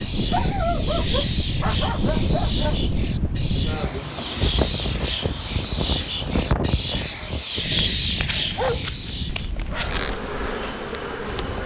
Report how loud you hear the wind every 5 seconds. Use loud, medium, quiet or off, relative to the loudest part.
loud, loud, quiet.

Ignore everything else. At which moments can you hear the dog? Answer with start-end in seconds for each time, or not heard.
0.3-2.8, 8.0-10.2.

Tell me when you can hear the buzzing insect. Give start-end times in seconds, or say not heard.
9.7-11.6.